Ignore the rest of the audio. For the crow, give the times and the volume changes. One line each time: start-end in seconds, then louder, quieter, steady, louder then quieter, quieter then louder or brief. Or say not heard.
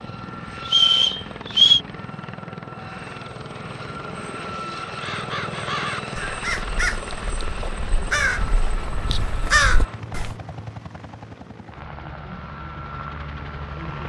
4.8-10.3 quieter then louder.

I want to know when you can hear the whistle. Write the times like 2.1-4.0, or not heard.
0.7-1.8.